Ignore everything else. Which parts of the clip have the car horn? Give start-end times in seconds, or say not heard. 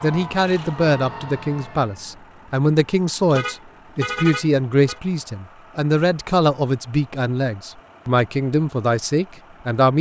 3.3-5.0.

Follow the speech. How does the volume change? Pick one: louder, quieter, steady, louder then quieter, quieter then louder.
steady.